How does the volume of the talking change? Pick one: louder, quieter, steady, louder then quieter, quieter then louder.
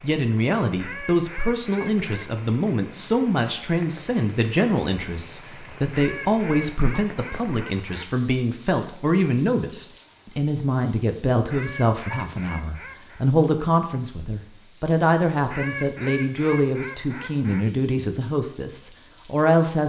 steady.